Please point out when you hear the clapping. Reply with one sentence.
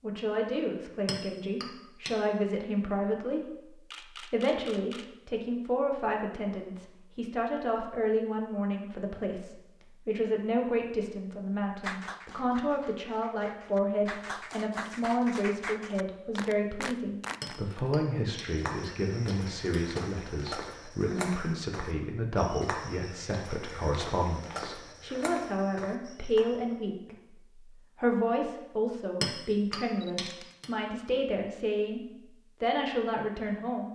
The clapping can be heard from 11.8 to 17.6 s.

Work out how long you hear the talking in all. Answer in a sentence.
The talking can be heard for 33 seconds in total.